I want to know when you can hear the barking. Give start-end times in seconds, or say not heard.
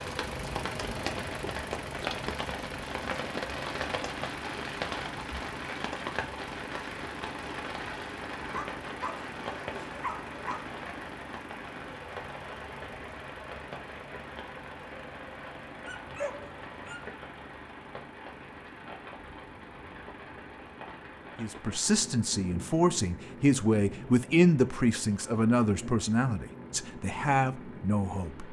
8.5-10.7, 15.8-17.1.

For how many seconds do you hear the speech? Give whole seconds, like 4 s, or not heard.
7 s.